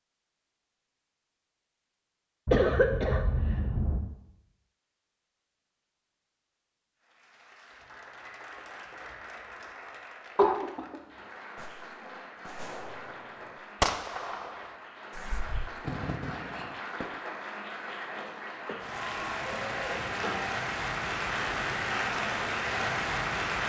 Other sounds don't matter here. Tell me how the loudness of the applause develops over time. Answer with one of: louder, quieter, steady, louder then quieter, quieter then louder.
louder.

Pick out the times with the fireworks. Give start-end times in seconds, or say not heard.
11.6-17.1.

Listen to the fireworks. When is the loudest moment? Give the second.
14 s.